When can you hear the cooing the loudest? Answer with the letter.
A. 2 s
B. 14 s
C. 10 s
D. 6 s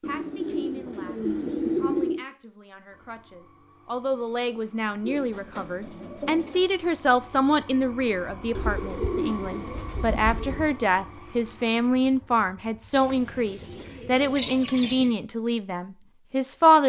A.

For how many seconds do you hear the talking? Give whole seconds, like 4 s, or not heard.
17 s.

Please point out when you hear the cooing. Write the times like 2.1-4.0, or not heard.
0.0-2.2, 5.0-6.7, 8.6-10.7, 12.9-15.2.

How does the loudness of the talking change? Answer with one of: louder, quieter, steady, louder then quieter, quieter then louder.
louder.